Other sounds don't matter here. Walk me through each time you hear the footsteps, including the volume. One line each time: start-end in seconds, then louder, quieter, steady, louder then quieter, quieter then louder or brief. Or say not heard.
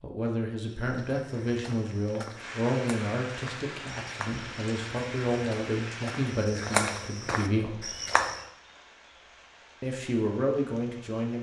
0.7-8.4 louder.